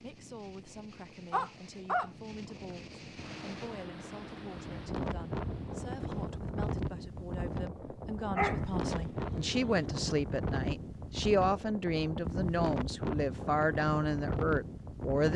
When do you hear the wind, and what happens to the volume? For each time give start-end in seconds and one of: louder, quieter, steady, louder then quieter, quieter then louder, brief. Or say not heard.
0.0-15.3 louder.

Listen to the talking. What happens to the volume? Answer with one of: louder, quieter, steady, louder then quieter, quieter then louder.
louder.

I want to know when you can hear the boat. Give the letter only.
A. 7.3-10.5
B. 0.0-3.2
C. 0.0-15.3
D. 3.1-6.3
D.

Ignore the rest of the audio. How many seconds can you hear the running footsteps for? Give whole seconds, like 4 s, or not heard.
not heard.